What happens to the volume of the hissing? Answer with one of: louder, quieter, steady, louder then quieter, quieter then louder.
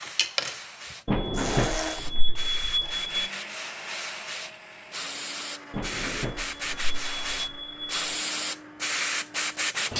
louder.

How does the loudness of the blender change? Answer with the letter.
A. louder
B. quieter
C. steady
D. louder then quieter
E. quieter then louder
B.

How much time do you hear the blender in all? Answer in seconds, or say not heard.
10 s.